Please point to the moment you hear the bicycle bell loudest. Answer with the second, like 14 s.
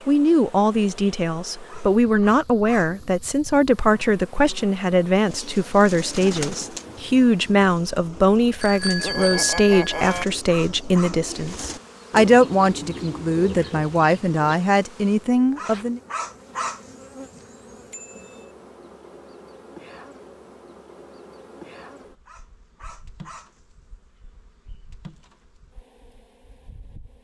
9 s.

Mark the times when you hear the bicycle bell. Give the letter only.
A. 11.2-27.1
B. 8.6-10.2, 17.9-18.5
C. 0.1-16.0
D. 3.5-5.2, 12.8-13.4
B.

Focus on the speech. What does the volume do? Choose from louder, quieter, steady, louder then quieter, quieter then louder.
steady.